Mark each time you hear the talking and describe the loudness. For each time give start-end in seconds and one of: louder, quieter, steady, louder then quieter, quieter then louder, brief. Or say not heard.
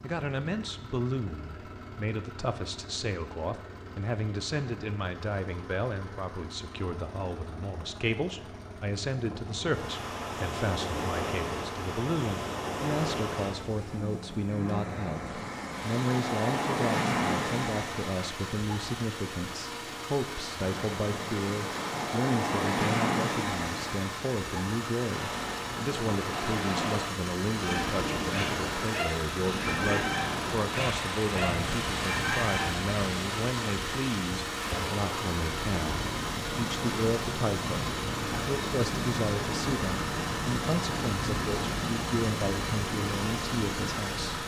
0.0-44.4 steady.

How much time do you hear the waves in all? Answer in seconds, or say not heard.
35 s.